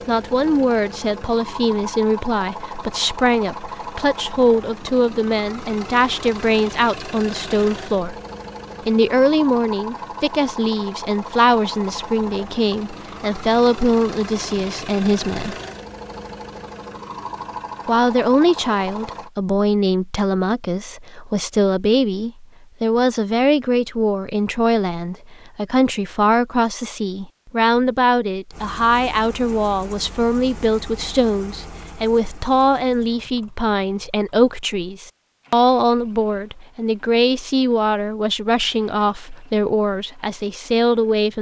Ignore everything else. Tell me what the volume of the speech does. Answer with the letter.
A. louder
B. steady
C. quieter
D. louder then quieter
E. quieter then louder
B.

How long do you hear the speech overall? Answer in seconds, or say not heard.
38 s.